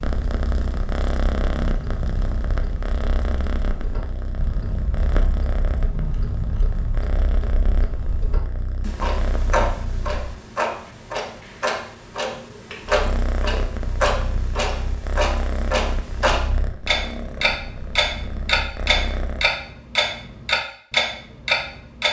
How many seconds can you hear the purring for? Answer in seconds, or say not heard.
17 s.